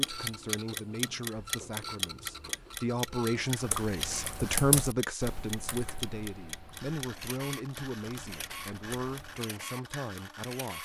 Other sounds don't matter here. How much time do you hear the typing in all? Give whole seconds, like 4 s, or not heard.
6 s.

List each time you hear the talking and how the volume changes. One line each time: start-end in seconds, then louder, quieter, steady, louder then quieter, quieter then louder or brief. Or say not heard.
0.0-10.8 louder then quieter.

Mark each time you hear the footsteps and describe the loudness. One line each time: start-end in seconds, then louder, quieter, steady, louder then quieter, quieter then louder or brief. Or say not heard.
not heard.